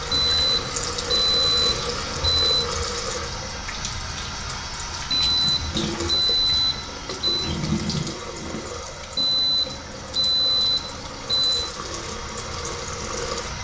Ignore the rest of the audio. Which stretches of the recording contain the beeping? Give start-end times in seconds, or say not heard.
0.1-2.6, 5.1-7.5, 9.2-11.7.